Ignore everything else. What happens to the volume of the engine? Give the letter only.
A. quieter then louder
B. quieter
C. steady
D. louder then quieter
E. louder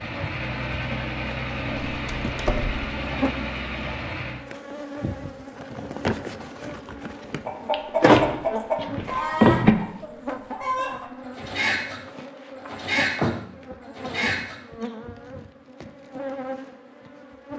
C.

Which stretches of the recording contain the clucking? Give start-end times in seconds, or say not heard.
7.0-13.3, 13.9-14.8.